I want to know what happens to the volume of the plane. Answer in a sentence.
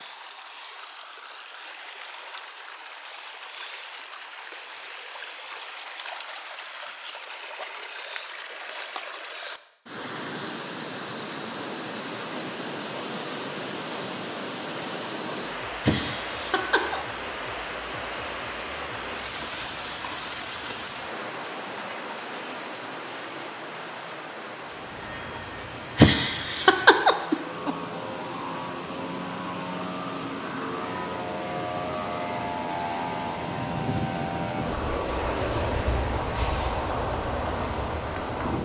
The loudness of the plane goes up.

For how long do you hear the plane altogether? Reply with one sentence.
You can hear the plane for 14 seconds altogether.